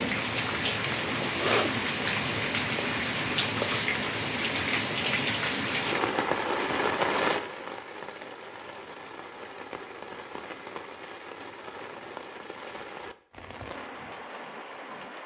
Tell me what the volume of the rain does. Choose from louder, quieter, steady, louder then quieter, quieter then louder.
quieter.